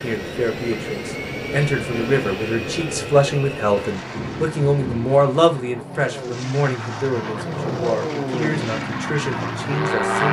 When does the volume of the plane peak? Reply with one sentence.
The loudest moment of the plane is at 10 seconds.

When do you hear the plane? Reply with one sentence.
You can hear the plane from 0.0 to 10.2 s.